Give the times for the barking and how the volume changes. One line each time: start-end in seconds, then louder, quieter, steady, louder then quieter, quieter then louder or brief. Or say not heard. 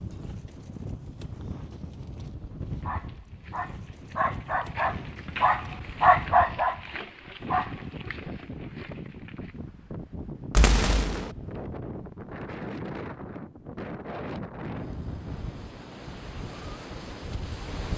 2.8-9.6 louder then quieter.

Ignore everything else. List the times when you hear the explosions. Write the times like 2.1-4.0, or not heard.
10.5-11.3.